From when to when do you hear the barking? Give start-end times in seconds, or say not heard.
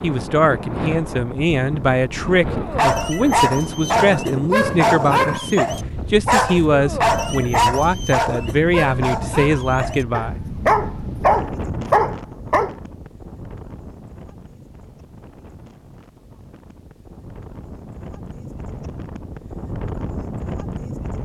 2.5-12.8.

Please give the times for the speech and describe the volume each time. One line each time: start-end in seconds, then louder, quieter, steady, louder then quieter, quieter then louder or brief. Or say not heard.
0.0-10.4 steady.